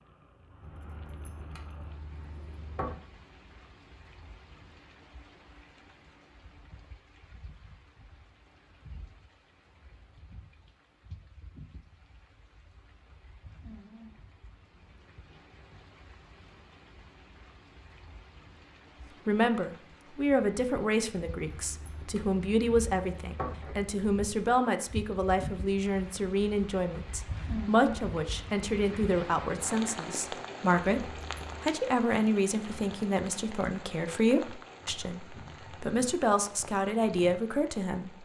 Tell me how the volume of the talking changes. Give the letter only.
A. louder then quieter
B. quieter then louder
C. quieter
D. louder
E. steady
E.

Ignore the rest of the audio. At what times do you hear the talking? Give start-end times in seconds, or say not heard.
19.2-38.2.